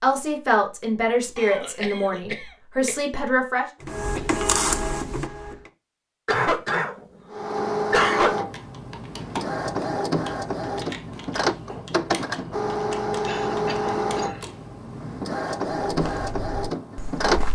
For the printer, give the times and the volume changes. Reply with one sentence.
You can hear the printer briefly from 3.8 to 5.7 s; and from 7.3 to 17.4 s, at a steady volume.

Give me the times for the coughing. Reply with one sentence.
You can hear the coughing from 1.4 to 3.0 s, from 6.2 to 8.3 s and from 13.2 to 14.4 s.